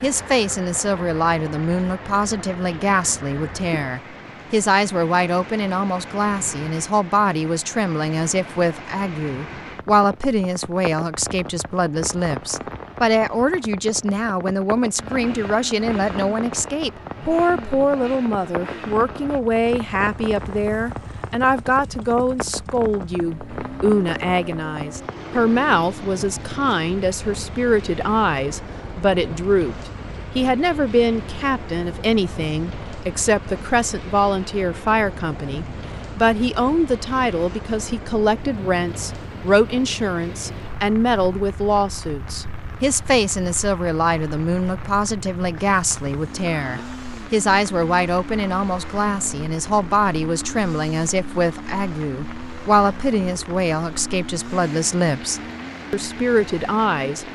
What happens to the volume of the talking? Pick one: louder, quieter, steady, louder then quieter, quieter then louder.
steady.